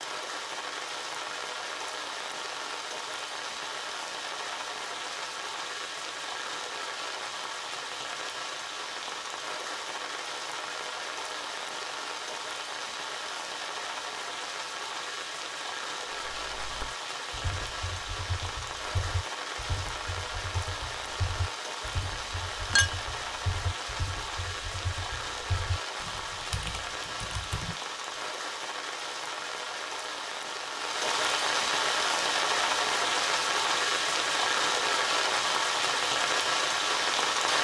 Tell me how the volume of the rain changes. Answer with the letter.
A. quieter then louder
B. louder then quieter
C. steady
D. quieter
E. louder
E.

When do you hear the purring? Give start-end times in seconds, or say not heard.
not heard.